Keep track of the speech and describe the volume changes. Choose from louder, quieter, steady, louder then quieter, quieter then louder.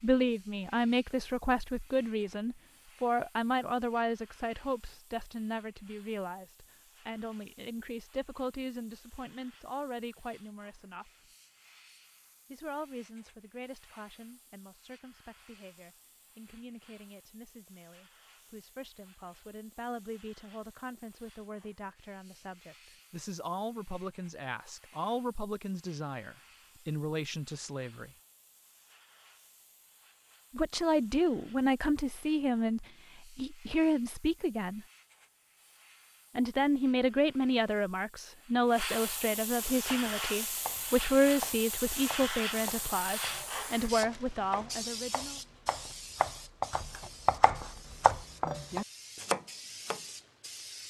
quieter then louder.